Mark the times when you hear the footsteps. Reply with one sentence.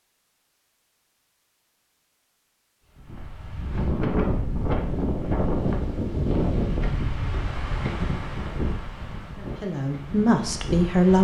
The footsteps can't be heard in this clip.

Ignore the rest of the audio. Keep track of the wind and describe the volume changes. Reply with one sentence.
The volume of the wind goes down.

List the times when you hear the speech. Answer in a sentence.
The speech can be heard from 9.3 to 11.1 s.